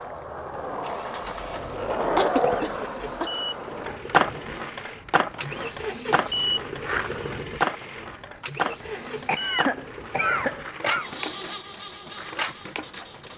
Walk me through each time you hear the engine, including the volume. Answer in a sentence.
The engine can be heard from 0.0 to 13.3 s, getting louder then quieter.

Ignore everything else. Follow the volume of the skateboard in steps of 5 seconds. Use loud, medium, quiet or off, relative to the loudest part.
loud, loud, medium.